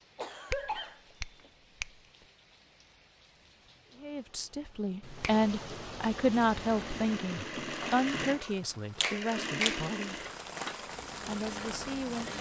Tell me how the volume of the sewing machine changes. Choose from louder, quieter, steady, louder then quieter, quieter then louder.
quieter.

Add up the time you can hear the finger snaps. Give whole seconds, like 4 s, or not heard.
3 s.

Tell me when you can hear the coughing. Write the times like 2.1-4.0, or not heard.
0.1-1.5.